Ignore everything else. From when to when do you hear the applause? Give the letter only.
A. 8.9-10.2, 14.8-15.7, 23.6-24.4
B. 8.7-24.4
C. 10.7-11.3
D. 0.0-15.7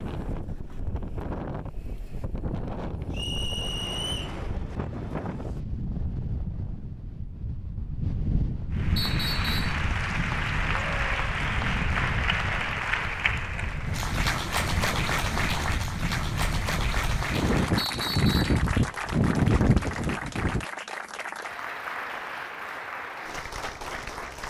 B.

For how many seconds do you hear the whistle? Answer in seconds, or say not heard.
3 s.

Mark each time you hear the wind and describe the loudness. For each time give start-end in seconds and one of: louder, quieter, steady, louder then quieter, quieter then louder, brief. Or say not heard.
0.0-20.6 louder.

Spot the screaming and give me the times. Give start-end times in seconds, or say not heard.
10.7-11.3.